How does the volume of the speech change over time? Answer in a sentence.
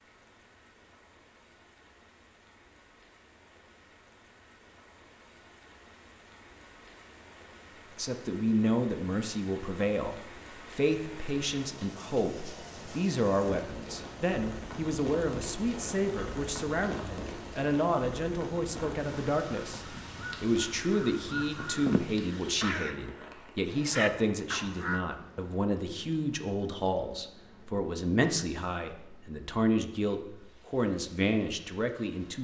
The volume of the speech stays about the same.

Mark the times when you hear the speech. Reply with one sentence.
The speech can be heard from 8.0 to 32.3 s.